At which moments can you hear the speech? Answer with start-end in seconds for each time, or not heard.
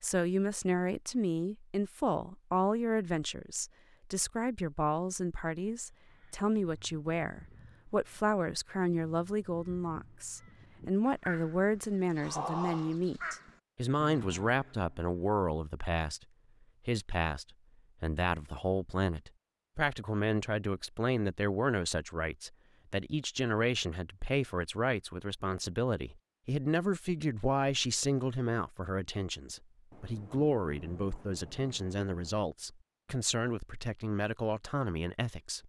0.0-16.2, 16.9-35.6.